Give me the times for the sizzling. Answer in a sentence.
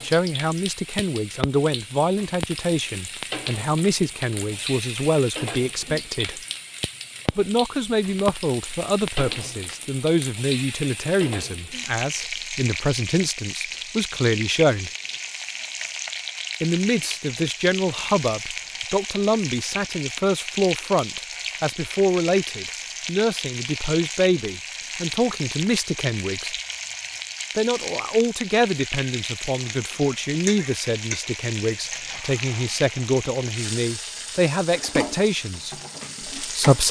You can hear the sizzling from 0.0 to 36.8 s.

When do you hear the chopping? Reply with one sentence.
You can't hear the chopping here.